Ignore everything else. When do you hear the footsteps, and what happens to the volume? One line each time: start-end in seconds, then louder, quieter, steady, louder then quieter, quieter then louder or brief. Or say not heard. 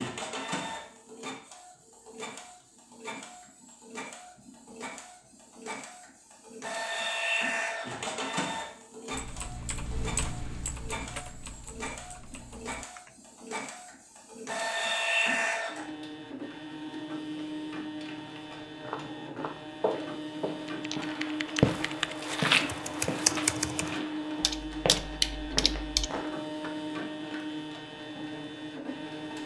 18.8-26.7 louder then quieter.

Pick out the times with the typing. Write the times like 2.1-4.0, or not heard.
9.1-13.1, 20.6-26.1.